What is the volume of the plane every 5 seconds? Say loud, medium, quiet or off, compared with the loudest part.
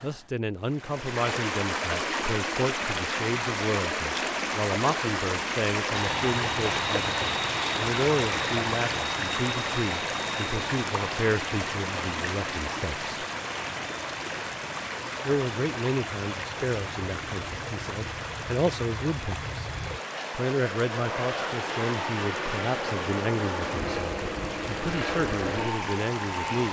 off, loud, medium, medium, loud, loud.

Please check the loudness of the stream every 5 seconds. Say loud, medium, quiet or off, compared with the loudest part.
loud, loud, loud, medium, medium, medium.